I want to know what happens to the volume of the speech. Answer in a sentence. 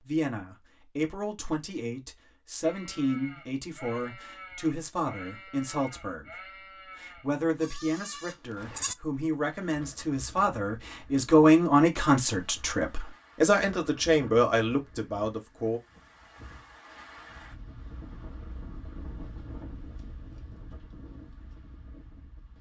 The loudness of the speech goes up.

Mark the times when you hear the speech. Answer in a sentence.
You can hear the speech from 0.0 to 15.8 s.